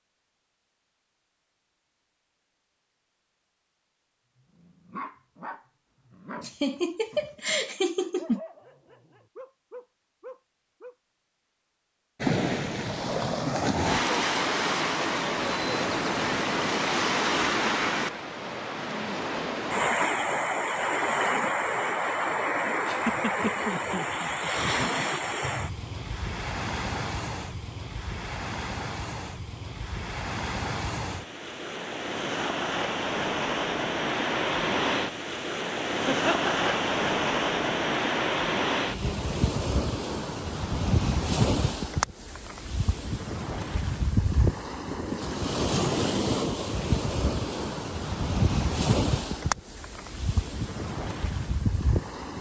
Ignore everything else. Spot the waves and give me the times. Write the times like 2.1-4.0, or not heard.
12.2-52.3.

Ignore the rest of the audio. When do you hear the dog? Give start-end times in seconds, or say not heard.
4.5-10.9.